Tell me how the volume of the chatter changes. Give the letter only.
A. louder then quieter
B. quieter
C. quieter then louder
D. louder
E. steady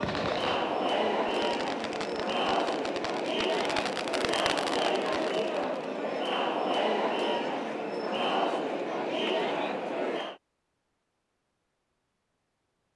E.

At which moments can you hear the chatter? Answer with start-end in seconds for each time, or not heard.
0.0-10.3.